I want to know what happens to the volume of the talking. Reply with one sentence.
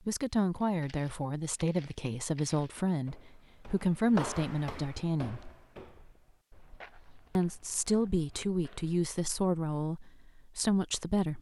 The volume of the talking stays about the same.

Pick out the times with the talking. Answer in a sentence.
You can hear the talking from 0.1 to 5.5 s and from 7.3 to 11.3 s.